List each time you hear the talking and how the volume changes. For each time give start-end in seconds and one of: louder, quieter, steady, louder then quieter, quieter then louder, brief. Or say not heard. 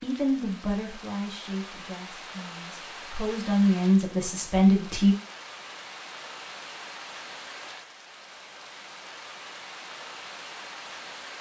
0.0-5.2 quieter then louder.